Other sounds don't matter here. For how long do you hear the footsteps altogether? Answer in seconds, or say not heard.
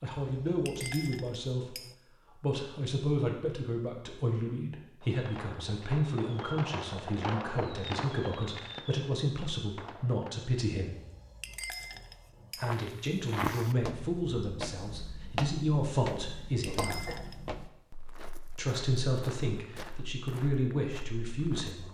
9 s.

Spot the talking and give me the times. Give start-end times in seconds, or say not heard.
0.0-1.8, 2.4-10.9, 12.5-17.1, 18.6-21.8.